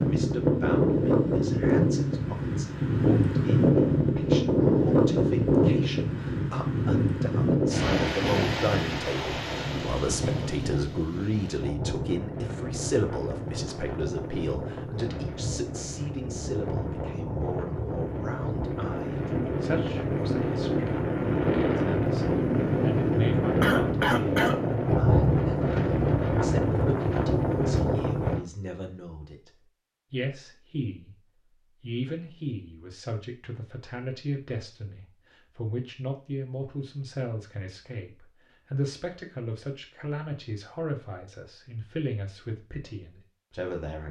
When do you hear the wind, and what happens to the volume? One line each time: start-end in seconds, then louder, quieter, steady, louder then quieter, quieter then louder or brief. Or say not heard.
0.0-28.4 quieter then louder.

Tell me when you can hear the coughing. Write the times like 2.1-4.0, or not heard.
23.6-24.6.